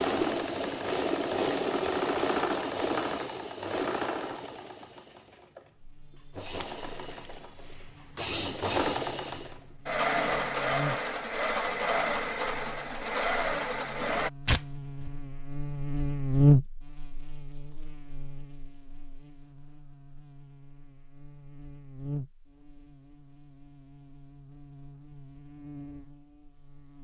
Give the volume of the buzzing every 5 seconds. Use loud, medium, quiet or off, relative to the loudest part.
off, quiet, quiet, loud, quiet, quiet.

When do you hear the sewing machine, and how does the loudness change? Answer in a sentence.
The sewing machine can be heard from 0.0 to 14.3 s, getting quieter then louder.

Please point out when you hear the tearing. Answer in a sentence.
You can hear the tearing from 6.5 to 7.3 s and from 14.4 to 15.1 s.